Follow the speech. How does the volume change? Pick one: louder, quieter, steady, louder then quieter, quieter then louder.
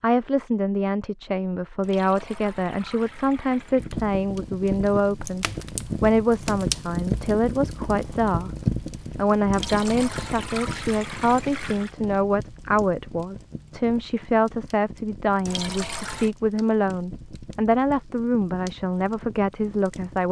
steady.